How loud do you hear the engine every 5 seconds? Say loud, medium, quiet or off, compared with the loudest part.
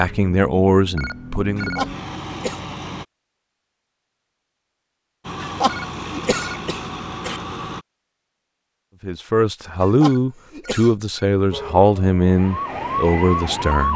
loud, loud, off.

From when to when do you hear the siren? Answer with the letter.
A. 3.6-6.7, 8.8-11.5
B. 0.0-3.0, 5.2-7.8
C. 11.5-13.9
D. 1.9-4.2
C.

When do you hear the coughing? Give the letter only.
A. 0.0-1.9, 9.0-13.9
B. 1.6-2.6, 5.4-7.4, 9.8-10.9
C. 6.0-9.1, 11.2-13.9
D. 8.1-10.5
B.